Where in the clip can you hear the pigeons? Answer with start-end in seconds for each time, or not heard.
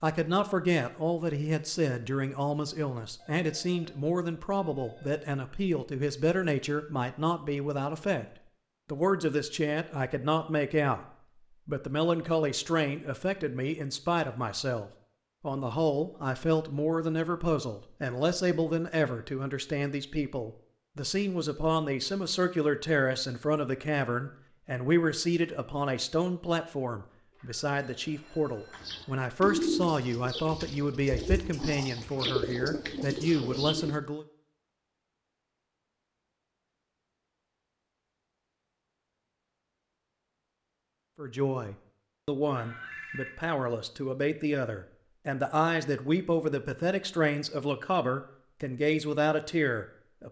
28.7-34.0.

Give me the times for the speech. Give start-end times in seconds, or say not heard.
0.0-11.0, 11.7-34.2, 41.1-50.2.